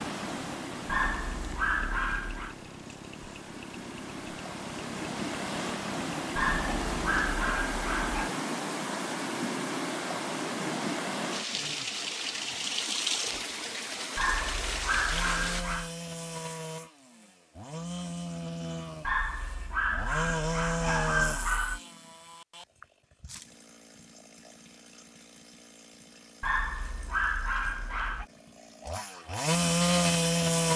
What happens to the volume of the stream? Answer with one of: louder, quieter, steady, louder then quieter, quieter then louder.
louder.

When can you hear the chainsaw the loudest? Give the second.
30 s.